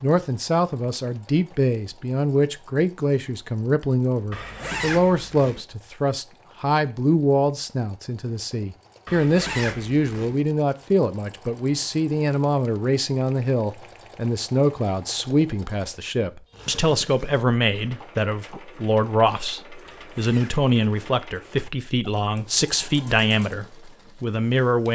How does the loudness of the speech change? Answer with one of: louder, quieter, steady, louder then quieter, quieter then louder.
steady.